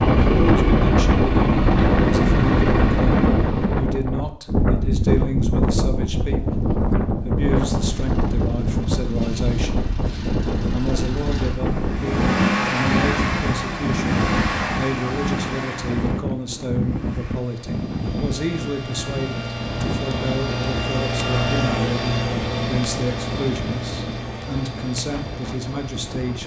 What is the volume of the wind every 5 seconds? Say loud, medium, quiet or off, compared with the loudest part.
loud, loud, medium, medium, quiet, quiet.